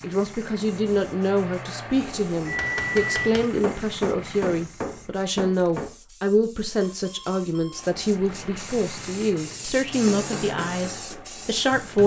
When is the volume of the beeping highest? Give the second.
3 s.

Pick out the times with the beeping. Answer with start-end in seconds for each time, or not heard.
2.0-3.3, 6.8-7.9.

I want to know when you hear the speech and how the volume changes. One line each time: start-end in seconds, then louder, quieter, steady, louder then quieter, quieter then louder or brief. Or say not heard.
0.0-12.0 steady.